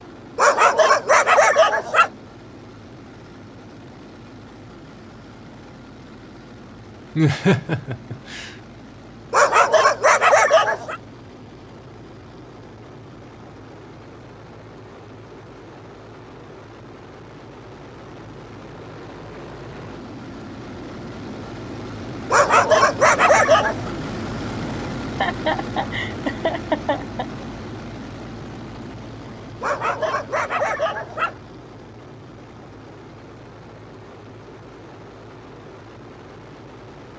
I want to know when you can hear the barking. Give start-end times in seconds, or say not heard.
0.3-2.1, 9.3-11.0, 22.3-23.9, 29.6-31.4.